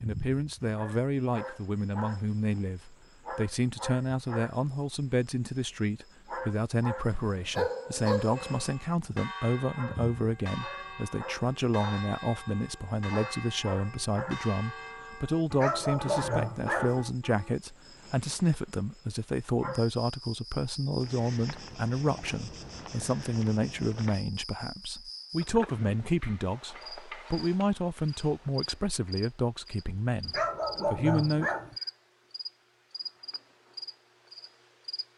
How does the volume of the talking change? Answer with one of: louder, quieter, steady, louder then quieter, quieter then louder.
steady.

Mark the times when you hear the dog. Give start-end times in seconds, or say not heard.
7.1-8.7, 15.5-17.0, 30.2-31.8.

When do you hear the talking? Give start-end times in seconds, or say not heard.
0.0-31.5.